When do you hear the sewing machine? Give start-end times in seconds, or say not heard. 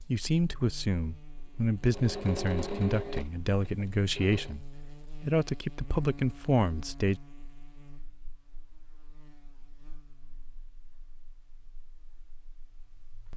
1.8-4.5.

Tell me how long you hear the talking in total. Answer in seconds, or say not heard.
7 s.